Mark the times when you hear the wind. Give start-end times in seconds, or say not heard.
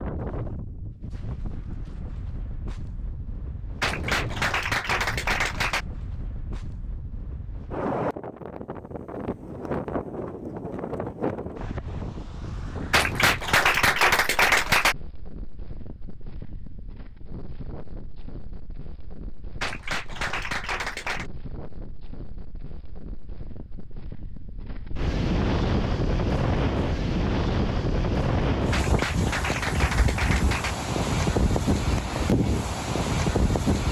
0.0-33.8.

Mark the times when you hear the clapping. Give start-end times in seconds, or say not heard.
3.8-5.8, 12.9-14.9, 19.6-21.3, 28.7-30.8.